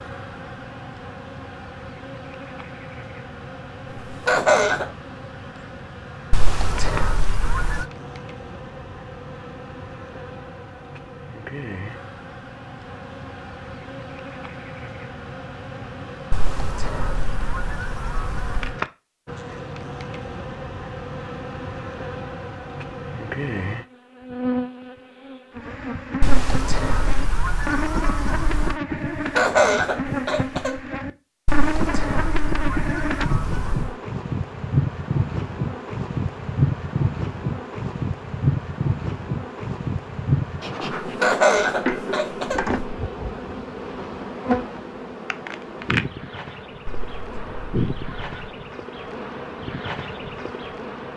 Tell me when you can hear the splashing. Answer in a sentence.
The splashing can't be heard in this clip.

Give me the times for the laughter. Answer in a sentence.
The laughter can be heard from 3.9 to 4.9 s, from 29.1 to 30.9 s and from 41.0 to 42.8 s.